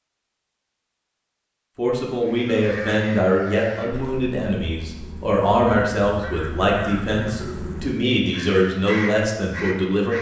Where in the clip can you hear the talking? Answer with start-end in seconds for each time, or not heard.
1.8-10.1.